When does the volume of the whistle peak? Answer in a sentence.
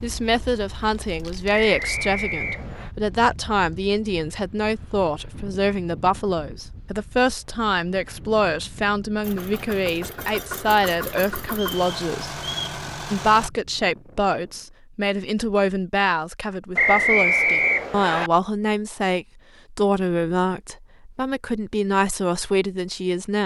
The volume of the whistle peaks at 17 seconds.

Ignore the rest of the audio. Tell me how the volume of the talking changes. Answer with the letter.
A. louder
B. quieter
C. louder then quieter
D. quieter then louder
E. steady
E.